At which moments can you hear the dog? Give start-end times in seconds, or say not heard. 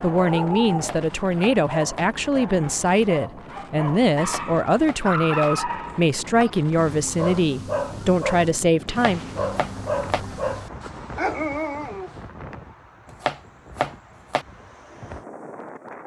0.0-12.2.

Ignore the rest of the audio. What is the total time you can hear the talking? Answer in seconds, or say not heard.
9 s.